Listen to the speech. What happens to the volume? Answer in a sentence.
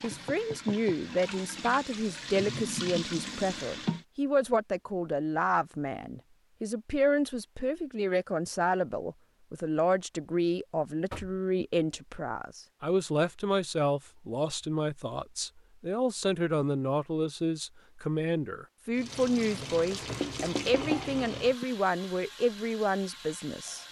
The volume of the speech stays about the same.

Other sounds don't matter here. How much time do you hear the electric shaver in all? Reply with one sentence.
You can't hear the electric shaver here.